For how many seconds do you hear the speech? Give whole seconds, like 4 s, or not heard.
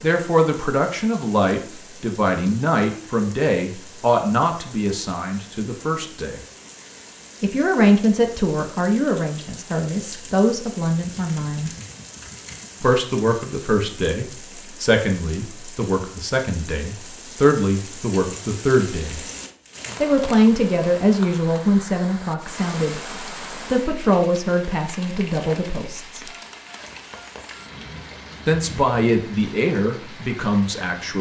26 s.